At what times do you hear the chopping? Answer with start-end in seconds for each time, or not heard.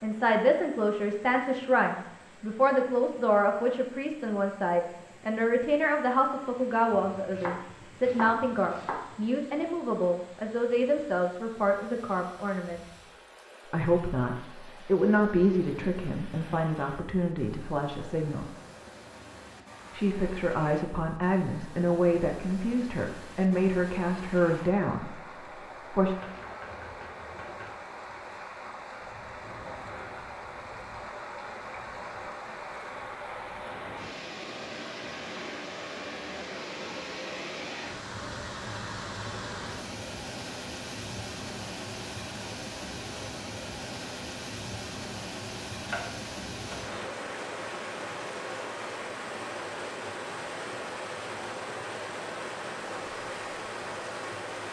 7.0-9.2, 26.2-27.7, 45.8-47.1.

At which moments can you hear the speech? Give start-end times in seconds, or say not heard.
0.0-13.0, 13.7-18.5, 19.9-26.1.